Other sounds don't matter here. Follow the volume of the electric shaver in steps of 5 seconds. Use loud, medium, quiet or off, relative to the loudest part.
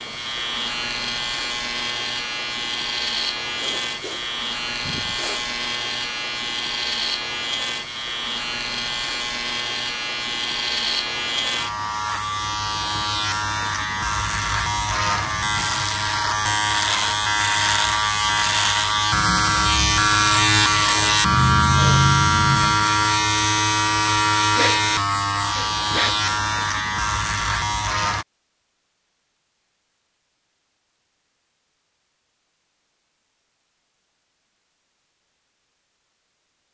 medium, medium, medium, loud, loud, medium, off, off.